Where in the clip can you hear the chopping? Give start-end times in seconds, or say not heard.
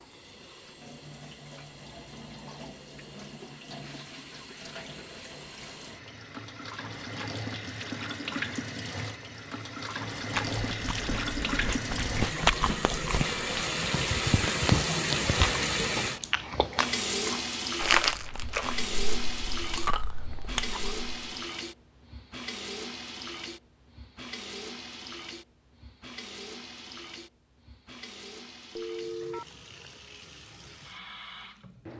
not heard.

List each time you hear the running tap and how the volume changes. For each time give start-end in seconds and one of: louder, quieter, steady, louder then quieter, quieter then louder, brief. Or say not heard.
0.0-31.9 louder then quieter.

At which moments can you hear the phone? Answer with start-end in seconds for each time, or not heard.
28.8-29.6.